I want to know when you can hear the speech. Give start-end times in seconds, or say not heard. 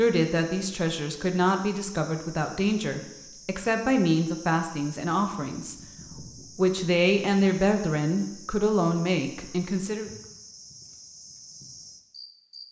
0.0-10.1.